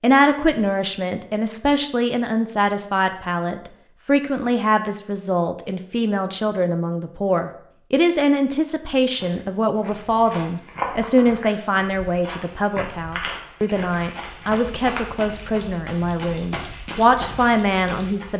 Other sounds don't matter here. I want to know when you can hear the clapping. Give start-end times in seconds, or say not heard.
not heard.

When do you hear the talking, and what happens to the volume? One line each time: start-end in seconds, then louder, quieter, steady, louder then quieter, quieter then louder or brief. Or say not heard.
0.0-18.3 steady.